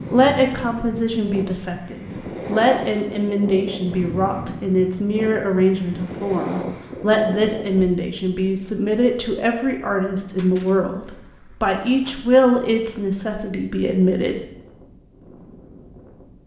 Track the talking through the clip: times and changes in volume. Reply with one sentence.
The talking can be heard from 0.1 to 14.4 s, at a steady volume.